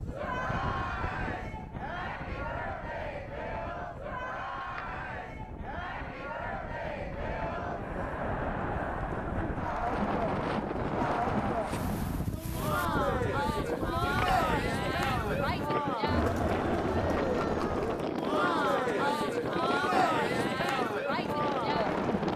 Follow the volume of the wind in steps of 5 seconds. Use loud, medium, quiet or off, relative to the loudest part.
medium, medium, loud, loud, loud.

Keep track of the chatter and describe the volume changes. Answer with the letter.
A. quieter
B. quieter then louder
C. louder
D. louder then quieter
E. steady
C.